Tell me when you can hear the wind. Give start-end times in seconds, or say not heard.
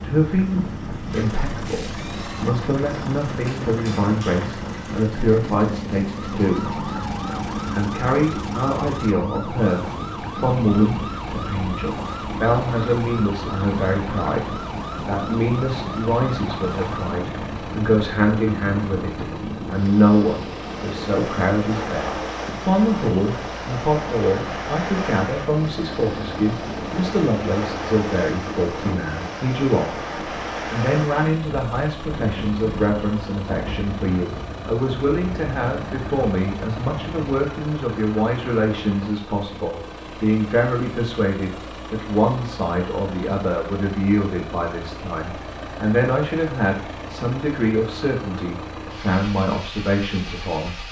0.0-37.4.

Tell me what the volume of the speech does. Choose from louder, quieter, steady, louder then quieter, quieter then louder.
steady.